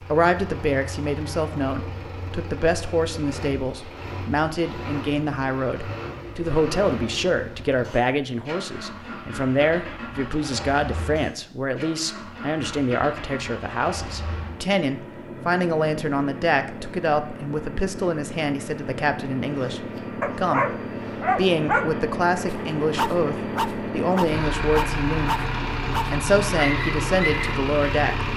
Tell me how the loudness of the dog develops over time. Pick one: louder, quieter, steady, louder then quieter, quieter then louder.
quieter.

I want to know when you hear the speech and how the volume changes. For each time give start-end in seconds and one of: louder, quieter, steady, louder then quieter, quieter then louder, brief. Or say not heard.
0.1-25.4 steady
26.1-28.3 brief.